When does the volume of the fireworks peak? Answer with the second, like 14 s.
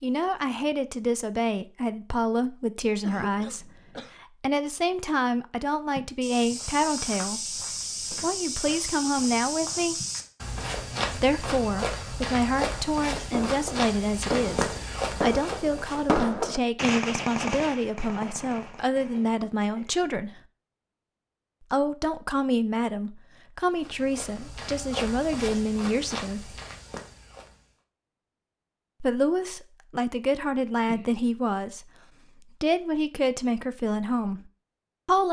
16 s.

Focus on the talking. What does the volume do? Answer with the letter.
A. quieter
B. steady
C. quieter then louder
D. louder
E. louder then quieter
B.